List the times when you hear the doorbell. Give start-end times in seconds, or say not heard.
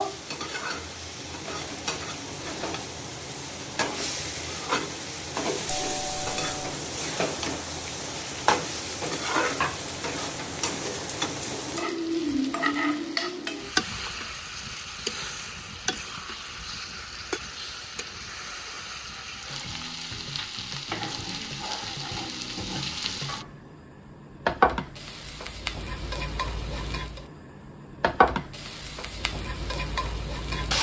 5.7-6.8.